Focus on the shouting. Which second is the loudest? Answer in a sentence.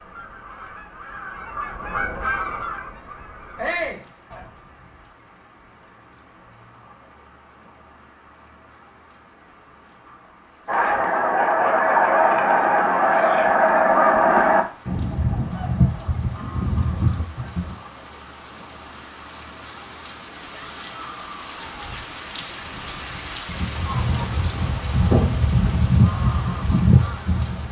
The loudest moment of the shouting is at 4 seconds.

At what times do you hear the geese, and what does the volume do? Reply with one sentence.
The geese can be heard from 0.0 to 4.5 s, getting louder then quieter; from 10.7 to 17.8 s, getting quieter; and from 23.4 to 27.6 s, getting louder.